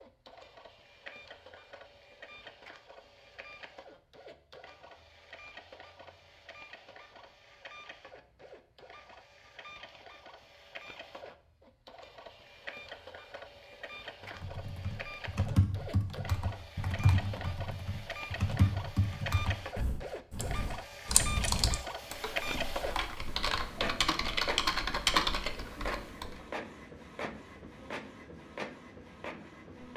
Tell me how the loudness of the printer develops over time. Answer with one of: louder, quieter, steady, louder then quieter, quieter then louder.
louder.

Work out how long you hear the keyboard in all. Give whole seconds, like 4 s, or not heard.
12 s.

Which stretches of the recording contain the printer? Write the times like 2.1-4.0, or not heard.
0.0-29.9.